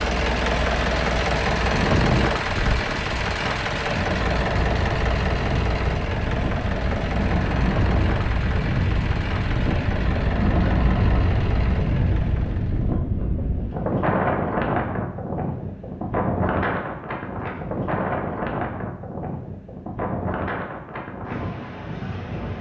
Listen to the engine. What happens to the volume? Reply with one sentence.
The volume of the engine goes down.